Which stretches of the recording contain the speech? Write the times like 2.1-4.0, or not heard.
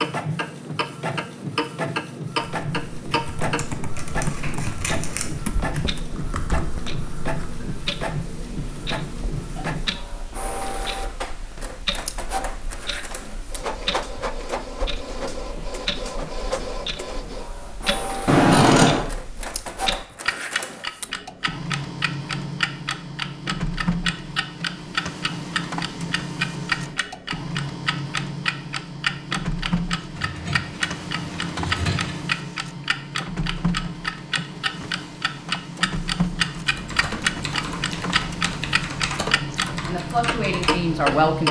39.9-41.4.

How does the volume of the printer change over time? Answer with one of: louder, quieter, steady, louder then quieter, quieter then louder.
steady.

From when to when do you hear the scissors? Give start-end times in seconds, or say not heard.
3.5-5.2, 18.2-19.1, 30.1-32.3.